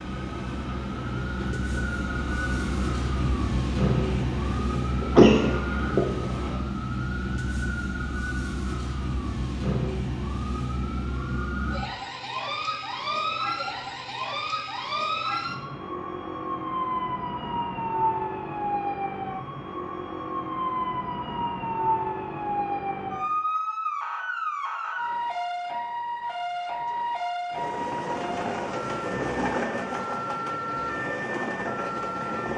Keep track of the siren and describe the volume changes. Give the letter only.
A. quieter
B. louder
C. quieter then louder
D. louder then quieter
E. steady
E.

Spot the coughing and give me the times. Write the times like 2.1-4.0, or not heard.
5.0-6.5.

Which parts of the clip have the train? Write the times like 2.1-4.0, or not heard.
0.0-6.6, 27.5-32.5.